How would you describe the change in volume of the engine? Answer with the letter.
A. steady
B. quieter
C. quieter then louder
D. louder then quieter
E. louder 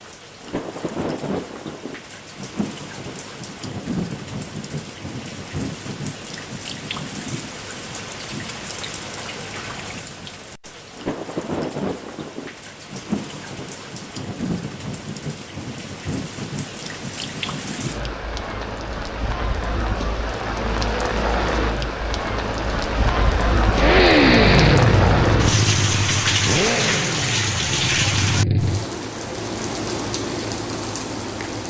B.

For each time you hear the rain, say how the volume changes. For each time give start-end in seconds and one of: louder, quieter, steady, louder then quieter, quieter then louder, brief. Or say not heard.
0.0-31.6 louder.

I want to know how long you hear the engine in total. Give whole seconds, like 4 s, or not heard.
5 s.